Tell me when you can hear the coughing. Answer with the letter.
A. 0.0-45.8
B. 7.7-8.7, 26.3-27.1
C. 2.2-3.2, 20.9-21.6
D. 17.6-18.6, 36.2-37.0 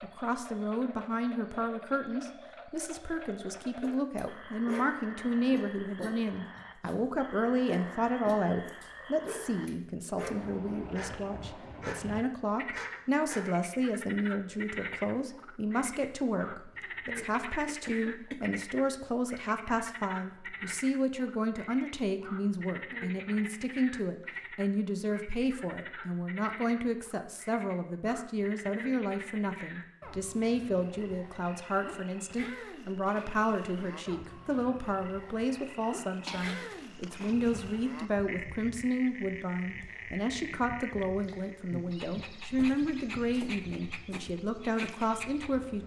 D.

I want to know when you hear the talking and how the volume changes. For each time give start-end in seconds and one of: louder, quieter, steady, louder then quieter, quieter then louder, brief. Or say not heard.
0.0-45.8 steady.